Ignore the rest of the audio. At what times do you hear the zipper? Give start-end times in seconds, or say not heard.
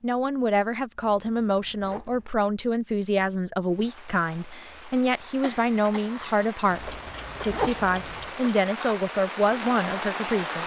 1.0-2.4, 6.7-8.3.